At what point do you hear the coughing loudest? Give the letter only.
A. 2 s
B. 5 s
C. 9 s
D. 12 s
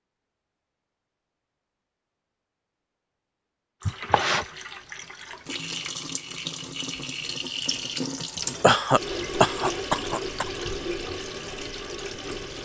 C.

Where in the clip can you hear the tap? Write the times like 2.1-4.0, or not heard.
3.8-12.6.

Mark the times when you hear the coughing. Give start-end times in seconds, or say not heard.
3.9-4.5, 8.6-10.5.